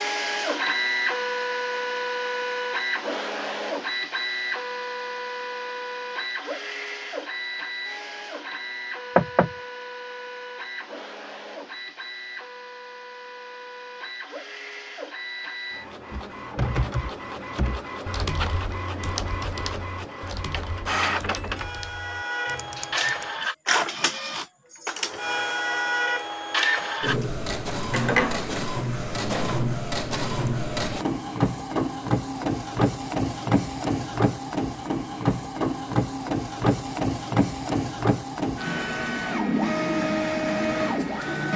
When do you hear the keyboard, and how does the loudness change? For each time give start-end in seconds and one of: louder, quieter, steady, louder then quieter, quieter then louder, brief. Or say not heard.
16.1-23.3 quieter.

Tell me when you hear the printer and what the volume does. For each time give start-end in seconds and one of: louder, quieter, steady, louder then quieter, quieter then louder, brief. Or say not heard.
0.0-41.5 quieter then louder.